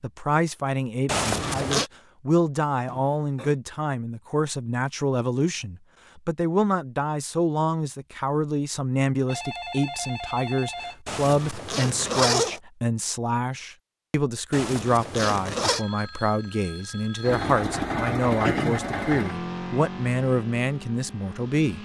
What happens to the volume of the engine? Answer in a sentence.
The volume of the engine goes down.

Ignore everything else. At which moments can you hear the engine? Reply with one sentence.
You can hear the engine from 17.2 to 21.7 s.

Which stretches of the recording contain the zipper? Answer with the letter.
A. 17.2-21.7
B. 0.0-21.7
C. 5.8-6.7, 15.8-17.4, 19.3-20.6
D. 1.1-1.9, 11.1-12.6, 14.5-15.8
D.